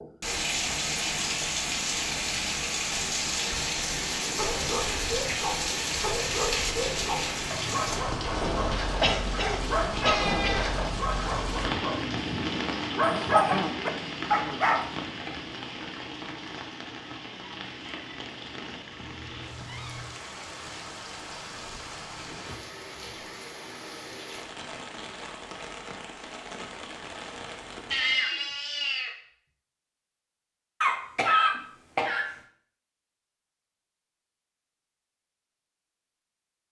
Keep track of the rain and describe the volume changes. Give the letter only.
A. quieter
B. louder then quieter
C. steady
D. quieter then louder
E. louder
A.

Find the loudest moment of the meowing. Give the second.
28 s.